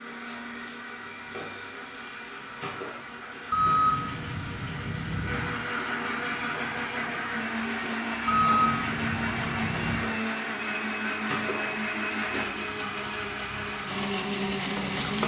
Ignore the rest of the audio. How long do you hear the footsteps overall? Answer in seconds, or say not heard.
not heard.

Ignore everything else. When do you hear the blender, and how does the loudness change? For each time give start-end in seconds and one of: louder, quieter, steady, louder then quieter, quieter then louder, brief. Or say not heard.
0.0-15.2 louder.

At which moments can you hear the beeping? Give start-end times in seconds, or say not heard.
3.5-5.5, 8.2-10.1.